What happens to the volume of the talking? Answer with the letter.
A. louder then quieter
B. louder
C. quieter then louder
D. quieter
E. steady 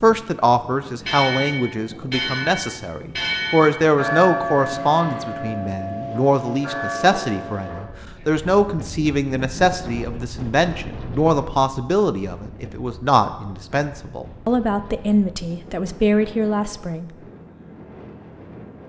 E.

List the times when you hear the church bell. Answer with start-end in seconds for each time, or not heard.
1.1-8.4.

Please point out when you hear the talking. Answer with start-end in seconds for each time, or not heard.
0.0-17.1.